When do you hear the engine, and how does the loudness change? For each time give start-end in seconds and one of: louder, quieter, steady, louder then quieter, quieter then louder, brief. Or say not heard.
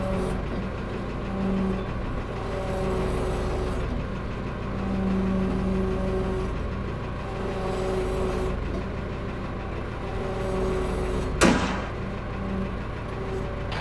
0.0-13.7 steady.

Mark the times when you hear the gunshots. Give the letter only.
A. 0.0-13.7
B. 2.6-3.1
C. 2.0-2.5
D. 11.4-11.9
D.